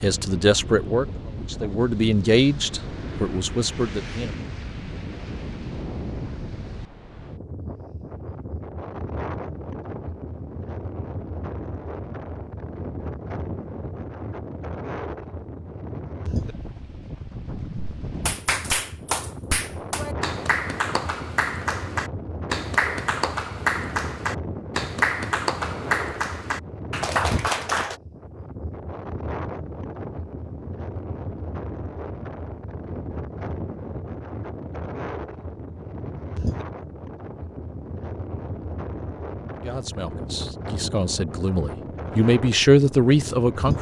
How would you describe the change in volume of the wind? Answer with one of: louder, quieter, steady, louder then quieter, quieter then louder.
steady.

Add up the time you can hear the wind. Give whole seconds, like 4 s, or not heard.
44 s.